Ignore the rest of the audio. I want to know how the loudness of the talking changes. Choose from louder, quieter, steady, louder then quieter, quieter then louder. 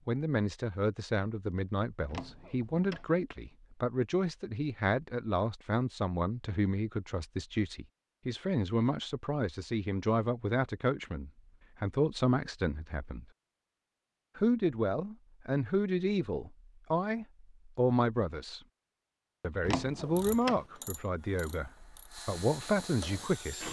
steady.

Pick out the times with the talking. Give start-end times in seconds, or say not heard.
0.1-13.2, 14.3-18.6, 19.4-23.6.